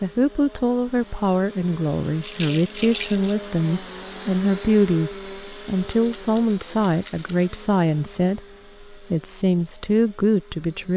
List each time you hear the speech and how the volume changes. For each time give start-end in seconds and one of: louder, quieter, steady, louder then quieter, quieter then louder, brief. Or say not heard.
0.0-10.9 steady.